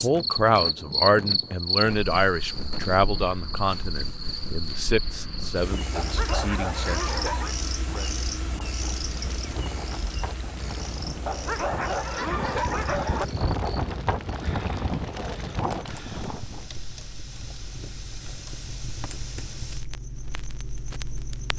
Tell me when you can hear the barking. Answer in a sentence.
You can hear the barking from 6.0 to 7.5 s and from 11.2 to 13.2 s.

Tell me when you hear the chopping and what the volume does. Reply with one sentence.
You can't hear the chopping here.